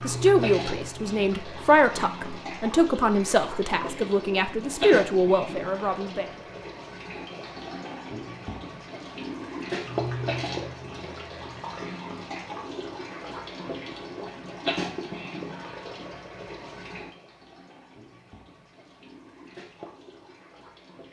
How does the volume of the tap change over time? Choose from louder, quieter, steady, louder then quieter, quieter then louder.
quieter.